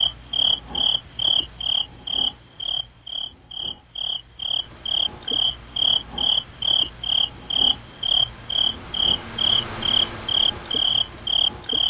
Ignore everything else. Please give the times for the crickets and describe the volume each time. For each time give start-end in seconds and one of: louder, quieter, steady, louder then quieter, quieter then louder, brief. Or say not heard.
0.0-11.8 quieter then louder.